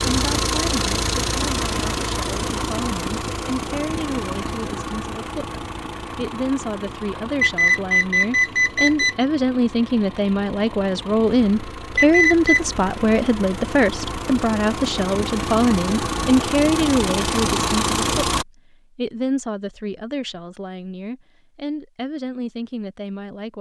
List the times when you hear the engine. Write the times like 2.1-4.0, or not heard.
0.0-18.4.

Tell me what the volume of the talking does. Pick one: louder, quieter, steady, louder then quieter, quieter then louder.
louder then quieter.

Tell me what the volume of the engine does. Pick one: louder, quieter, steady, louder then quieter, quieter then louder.
quieter then louder.